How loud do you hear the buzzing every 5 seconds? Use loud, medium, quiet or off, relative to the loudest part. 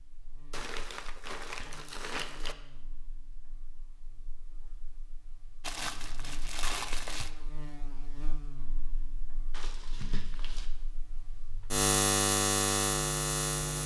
quiet, quiet, loud.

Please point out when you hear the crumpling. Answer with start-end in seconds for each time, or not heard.
0.5-2.5, 5.6-7.3, 9.5-10.7.